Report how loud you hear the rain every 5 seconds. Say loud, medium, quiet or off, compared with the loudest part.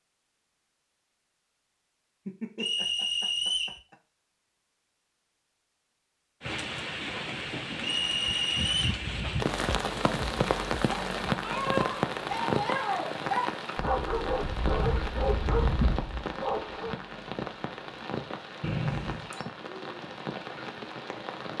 off, loud, loud, medium, medium.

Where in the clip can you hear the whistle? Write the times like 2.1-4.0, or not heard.
2.5-3.8, 7.8-8.9, 18.6-19.3.